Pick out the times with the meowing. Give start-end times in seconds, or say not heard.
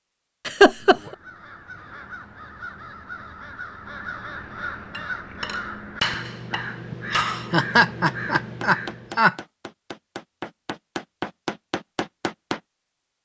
not heard.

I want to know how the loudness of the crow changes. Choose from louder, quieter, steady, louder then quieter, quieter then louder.
louder.